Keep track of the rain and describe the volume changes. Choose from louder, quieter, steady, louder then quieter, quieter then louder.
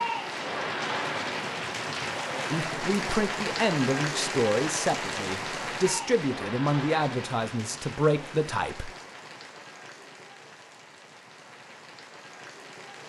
quieter.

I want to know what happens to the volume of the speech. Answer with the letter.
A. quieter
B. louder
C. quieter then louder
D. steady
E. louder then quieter
D.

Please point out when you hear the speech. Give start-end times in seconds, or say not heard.
2.5-8.9.